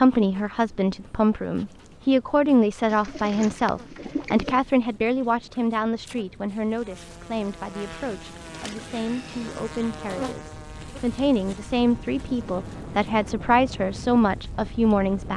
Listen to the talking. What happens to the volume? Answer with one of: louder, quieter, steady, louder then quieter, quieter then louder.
quieter then louder.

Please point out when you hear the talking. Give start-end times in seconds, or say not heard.
0.0-15.3.